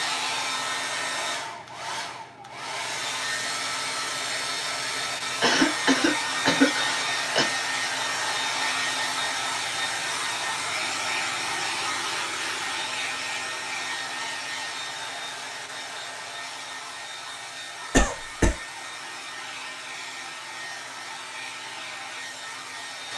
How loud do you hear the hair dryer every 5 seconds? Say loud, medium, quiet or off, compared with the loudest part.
loud, loud, loud, medium, medium.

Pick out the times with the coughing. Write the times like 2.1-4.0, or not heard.
5.4-7.5, 17.9-18.6.